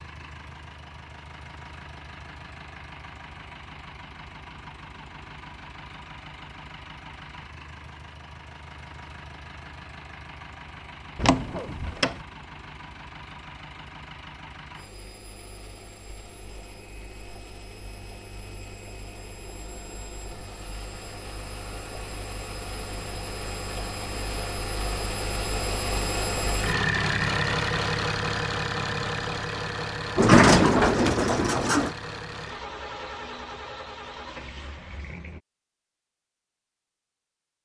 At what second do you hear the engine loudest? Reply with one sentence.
The volume of the engine peaks at 27 seconds.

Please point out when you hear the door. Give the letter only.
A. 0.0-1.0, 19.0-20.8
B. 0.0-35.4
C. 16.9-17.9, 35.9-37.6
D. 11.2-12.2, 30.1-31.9
D.